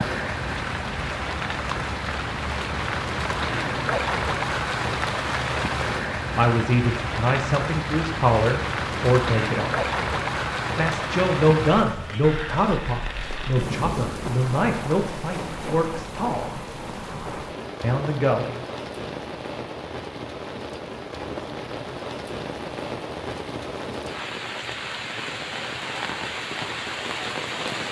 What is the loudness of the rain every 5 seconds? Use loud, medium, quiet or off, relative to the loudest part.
loud, loud, loud, medium, medium, loud.